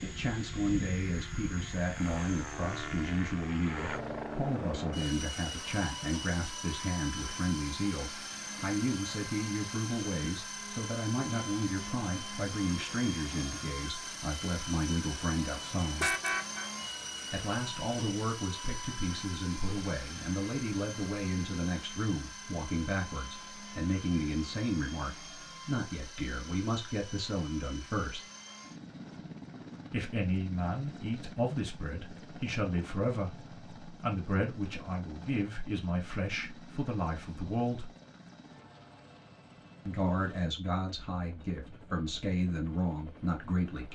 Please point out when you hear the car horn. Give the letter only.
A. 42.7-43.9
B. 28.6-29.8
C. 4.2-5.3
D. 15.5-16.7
D.